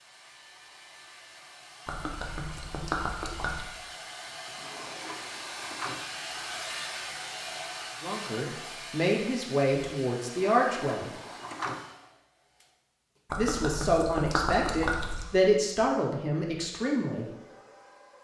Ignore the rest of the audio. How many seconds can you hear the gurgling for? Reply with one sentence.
The gurgling can be heard for 4 seconds in total.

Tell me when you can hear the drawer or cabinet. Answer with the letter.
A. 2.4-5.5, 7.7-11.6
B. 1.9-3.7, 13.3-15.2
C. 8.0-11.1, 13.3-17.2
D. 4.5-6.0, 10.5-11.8
D.